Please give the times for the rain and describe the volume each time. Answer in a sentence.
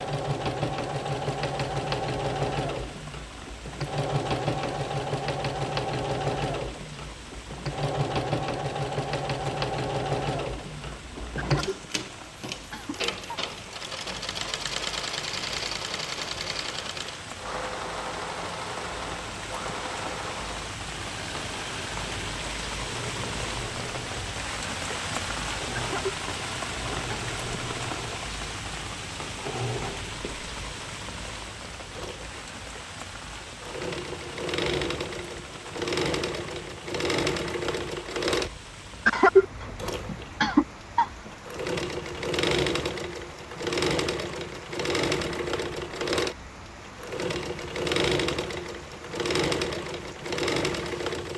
The rain can be heard from 0.0 to 51.3 s, getting louder then quieter.